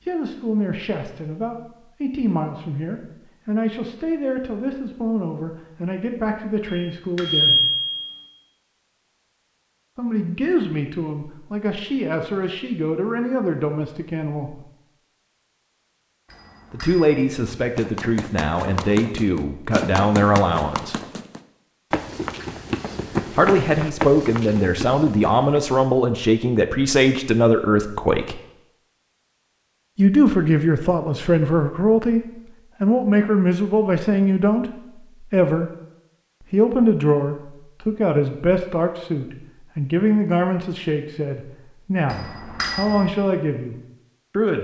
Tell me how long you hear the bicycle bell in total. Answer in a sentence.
You can hear the bicycle bell for 3 seconds altogether.